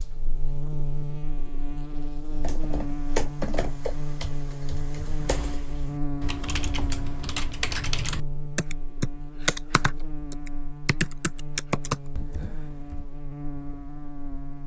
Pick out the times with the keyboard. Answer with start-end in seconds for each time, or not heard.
2.4-13.1.